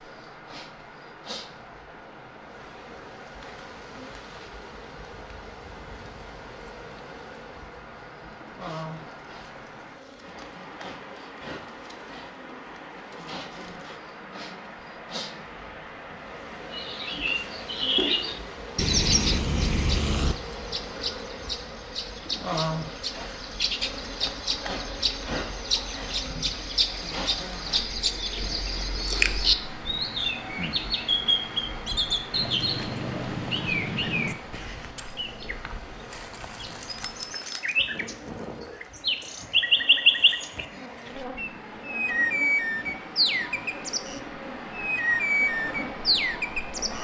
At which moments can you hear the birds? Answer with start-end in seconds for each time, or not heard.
16.7-46.9.